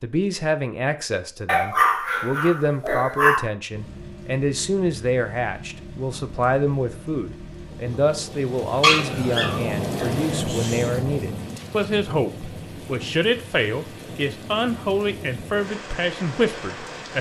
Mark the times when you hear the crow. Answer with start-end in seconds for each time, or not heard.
not heard.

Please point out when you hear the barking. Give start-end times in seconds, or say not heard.
1.4-3.4, 8.8-10.8.